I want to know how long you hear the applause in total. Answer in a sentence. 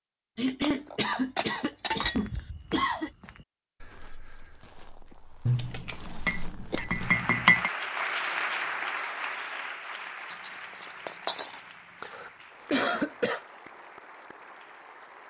The applause can be heard for 8 seconds in total.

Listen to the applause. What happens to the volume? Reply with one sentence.
The volume of the applause goes down.